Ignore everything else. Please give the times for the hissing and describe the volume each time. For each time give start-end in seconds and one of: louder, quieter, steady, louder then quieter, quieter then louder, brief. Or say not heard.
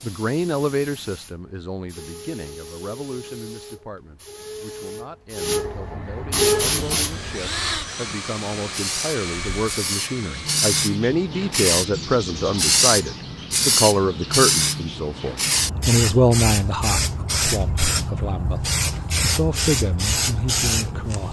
0.0-21.2 louder.